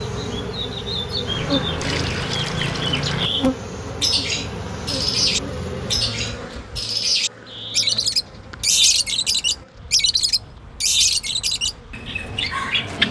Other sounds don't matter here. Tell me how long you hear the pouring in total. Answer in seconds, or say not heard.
2 s.